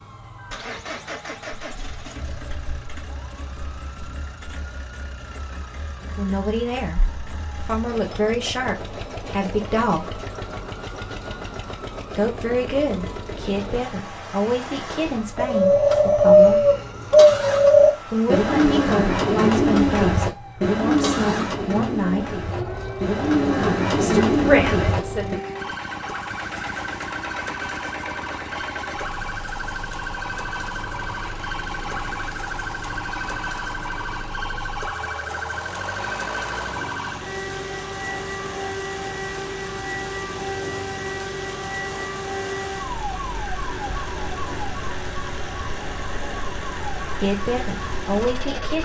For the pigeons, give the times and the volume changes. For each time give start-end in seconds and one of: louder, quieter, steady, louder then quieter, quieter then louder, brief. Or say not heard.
15.3-25.4 quieter then louder.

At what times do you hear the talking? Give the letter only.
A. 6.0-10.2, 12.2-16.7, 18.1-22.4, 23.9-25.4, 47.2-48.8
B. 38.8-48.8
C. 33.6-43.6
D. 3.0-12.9
A.